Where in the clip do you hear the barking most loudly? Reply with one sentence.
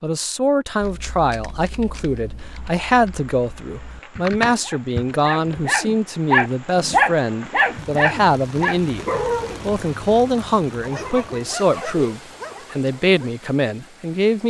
The volume of the barking peaks at 7 seconds.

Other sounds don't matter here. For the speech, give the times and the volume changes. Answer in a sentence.
The speech can be heard from 0.0 to 14.4 s, at a steady volume.